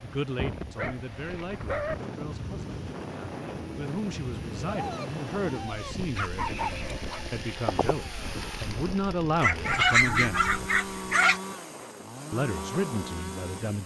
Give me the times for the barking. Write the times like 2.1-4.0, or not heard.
0.8-1.9, 4.7-7.2, 9.4-11.4.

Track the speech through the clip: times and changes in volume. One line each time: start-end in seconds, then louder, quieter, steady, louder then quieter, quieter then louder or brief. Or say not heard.
0.0-10.5 louder
12.3-13.8 brief.